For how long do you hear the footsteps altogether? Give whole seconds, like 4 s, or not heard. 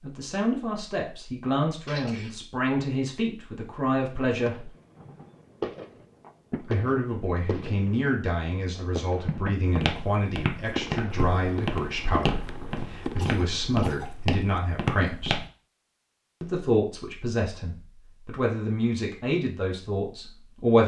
6 s.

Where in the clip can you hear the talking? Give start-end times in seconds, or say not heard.
0.0-4.7, 6.6-15.4, 16.4-20.8.